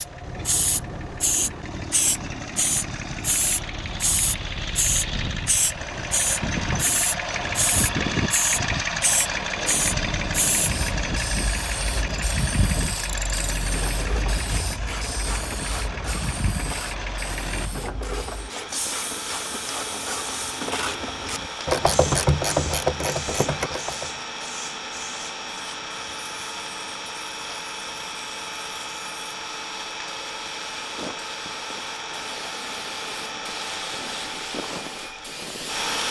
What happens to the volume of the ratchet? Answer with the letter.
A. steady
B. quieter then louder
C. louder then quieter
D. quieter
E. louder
E.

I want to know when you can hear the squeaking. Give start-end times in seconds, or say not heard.
23.2-23.7.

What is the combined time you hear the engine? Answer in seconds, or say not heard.
36 s.